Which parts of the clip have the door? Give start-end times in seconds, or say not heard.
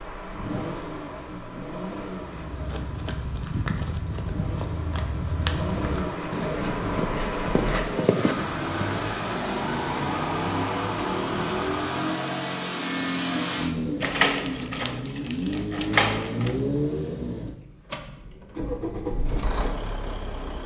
14.0-16.6.